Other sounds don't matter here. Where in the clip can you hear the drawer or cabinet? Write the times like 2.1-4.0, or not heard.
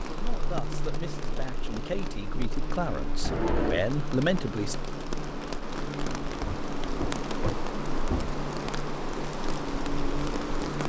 3.2-3.9, 6.4-8.3.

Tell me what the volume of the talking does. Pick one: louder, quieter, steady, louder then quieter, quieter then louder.
louder.